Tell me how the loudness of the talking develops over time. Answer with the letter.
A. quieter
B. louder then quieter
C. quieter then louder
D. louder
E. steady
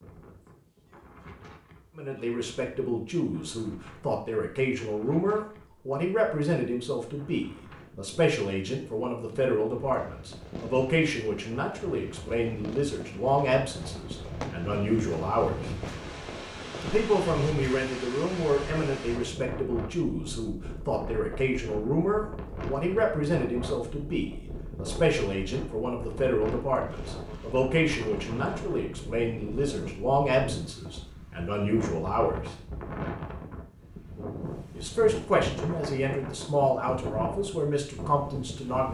E.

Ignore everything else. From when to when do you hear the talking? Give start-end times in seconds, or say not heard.
1.9-15.7, 16.8-32.5, 34.8-38.8.